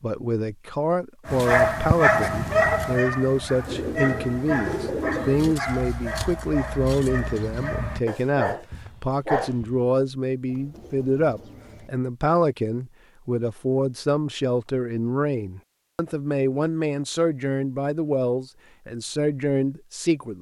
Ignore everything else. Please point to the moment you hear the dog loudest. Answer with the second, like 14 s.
2 s.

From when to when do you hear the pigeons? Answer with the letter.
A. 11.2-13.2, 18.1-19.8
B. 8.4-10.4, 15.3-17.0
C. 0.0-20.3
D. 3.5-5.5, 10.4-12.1
D.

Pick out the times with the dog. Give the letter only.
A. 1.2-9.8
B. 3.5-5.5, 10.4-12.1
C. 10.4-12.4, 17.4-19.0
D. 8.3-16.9
A.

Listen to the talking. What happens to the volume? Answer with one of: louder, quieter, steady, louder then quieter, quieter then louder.
steady.